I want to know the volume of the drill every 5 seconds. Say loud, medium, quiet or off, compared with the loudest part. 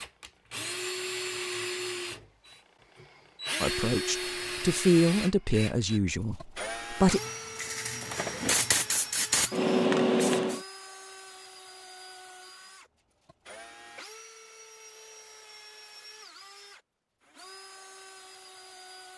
loud, medium, quiet, quiet.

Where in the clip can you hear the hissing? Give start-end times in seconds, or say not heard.
7.1-10.6.